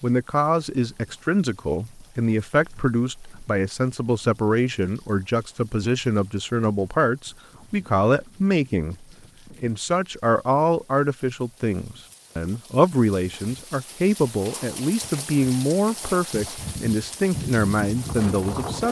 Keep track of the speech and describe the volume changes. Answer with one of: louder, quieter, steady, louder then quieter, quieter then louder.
steady.